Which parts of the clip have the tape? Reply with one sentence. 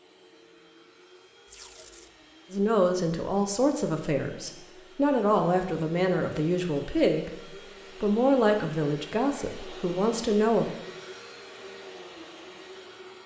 You can hear the tape from 1.4 to 2.1 s.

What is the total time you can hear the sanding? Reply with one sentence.
The sanding can't be heard in this clip.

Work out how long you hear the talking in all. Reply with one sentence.
You can hear the talking for 8 seconds altogether.